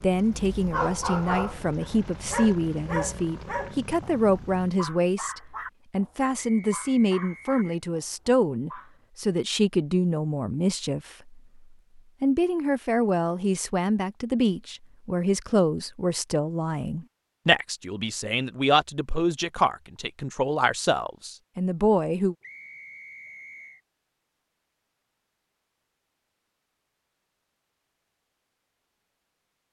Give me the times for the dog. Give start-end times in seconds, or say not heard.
0.3-9.0.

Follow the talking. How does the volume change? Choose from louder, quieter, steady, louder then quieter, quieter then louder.
steady.